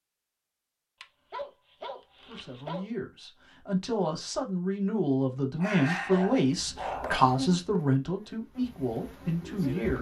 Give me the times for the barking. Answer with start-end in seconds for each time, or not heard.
1.0-2.9, 5.5-7.3.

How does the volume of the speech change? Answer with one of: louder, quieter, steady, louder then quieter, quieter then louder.
louder then quieter.